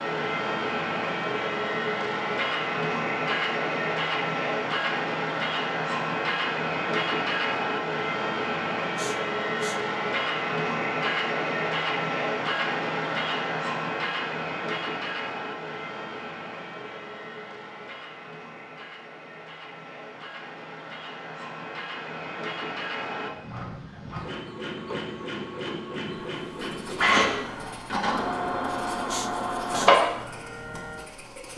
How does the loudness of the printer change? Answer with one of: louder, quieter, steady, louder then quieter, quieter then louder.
quieter then louder.